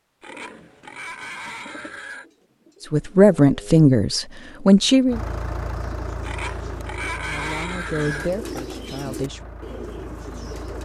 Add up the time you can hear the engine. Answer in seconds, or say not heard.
6 s.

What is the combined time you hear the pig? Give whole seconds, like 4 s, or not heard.
5 s.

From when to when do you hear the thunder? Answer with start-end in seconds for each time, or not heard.
not heard.